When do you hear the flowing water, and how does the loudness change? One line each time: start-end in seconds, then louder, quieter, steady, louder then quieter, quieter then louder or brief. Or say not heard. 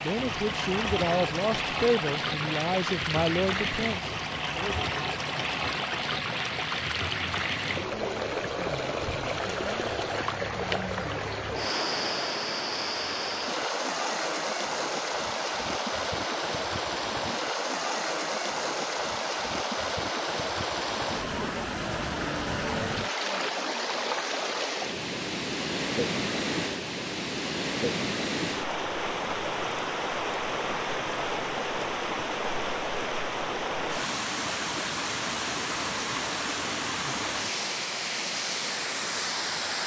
0.0-39.8 steady.